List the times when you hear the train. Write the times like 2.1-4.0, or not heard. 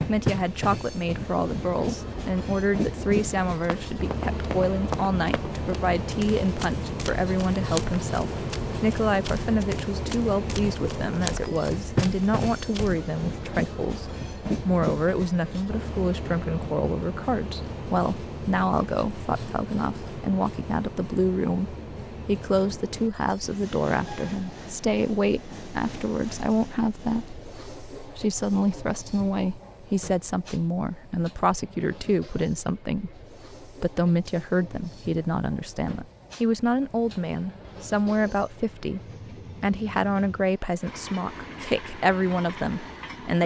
0.0-43.4.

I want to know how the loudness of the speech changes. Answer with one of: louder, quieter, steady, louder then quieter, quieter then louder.
steady.